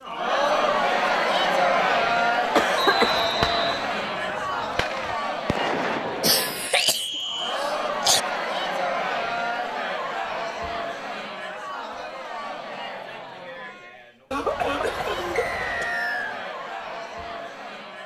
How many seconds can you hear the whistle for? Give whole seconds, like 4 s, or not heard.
3 s.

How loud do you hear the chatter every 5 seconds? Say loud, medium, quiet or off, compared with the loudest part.
loud, medium, medium, medium.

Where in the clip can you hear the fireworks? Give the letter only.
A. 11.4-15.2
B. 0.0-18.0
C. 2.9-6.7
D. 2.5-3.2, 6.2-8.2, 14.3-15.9
C.